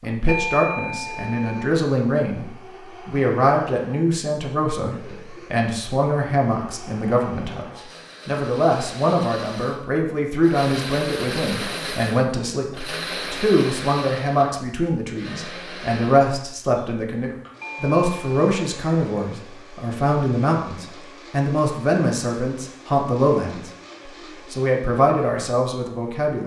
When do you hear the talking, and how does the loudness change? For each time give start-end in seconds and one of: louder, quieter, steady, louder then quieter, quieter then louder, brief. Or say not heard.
0.0-23.7 steady
24.5-26.4 brief.